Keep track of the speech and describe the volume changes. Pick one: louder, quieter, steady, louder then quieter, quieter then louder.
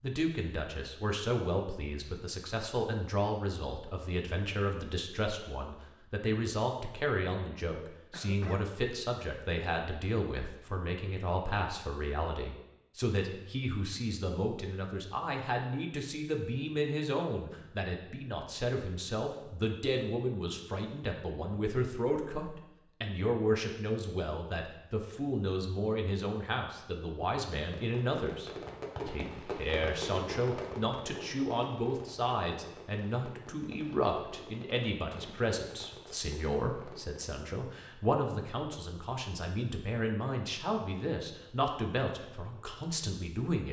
steady.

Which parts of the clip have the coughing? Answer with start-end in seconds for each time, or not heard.
8.1-8.7.